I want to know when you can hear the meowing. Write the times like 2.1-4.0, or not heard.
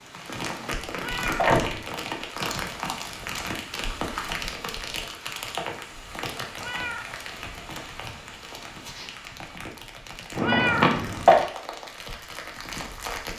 1.0-1.5, 6.6-7.1, 10.4-10.9.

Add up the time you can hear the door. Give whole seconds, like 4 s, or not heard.
2 s.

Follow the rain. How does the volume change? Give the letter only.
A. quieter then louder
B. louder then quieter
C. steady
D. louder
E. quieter
E.